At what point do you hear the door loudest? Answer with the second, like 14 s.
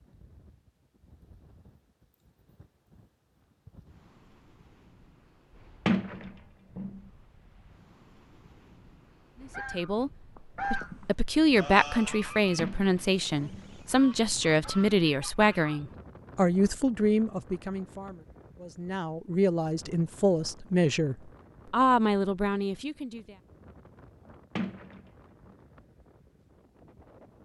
6 s.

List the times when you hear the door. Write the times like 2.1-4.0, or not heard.
5.8-7.0, 12.6-13.8, 24.6-25.5.